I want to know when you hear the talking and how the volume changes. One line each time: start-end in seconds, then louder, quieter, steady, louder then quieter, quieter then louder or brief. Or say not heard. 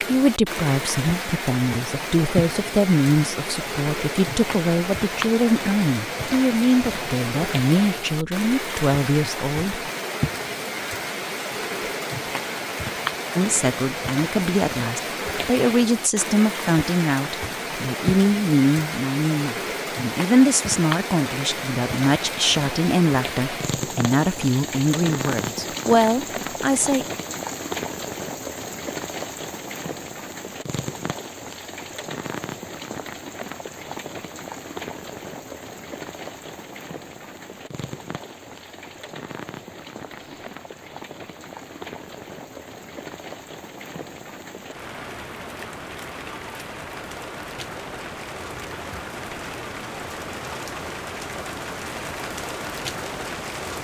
0.1-9.8 steady
13.3-27.1 steady.